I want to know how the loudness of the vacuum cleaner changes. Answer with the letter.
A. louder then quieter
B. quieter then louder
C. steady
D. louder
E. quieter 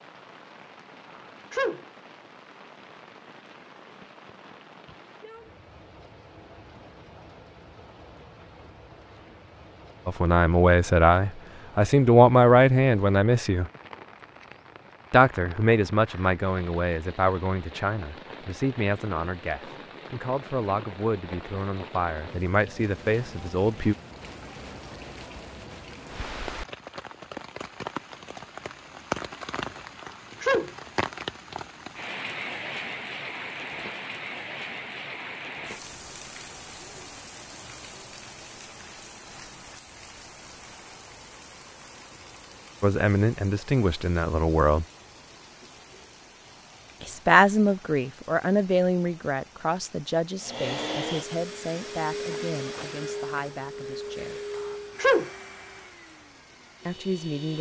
E.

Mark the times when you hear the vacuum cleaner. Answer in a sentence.
The vacuum cleaner can be heard from 50.4 to 57.5 s.